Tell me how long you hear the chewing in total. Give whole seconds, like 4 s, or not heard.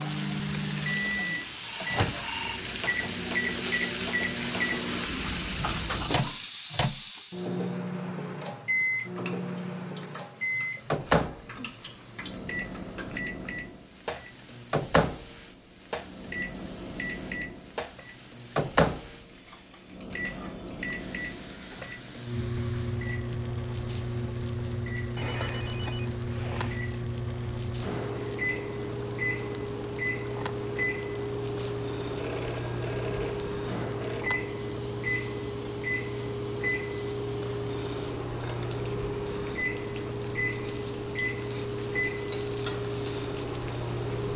not heard.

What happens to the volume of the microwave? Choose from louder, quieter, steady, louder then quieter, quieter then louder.
steady.